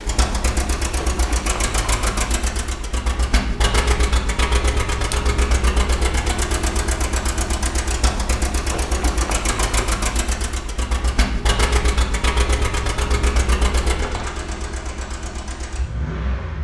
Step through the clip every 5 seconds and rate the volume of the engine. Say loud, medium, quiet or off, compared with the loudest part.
loud, loud, loud, medium.